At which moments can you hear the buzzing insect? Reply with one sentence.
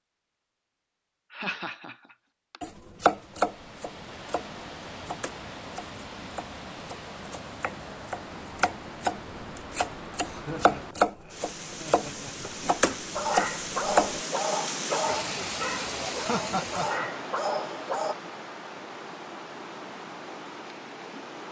You can't hear the buzzing insect here.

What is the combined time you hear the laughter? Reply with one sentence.
The laughter can be heard for 4 seconds in total.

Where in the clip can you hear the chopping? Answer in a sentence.
You can hear the chopping from 2.6 to 14.2 s.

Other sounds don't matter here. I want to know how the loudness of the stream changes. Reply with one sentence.
The volume of the stream goes up, then down.